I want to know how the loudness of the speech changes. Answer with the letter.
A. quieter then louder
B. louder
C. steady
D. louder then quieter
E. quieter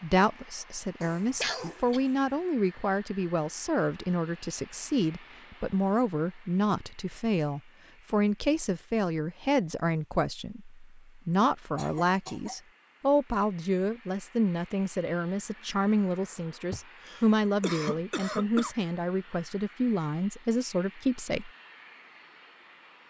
C.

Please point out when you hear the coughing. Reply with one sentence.
The coughing can be heard from 1.4 to 2.0 s, from 11.8 to 12.6 s and from 16.7 to 18.8 s.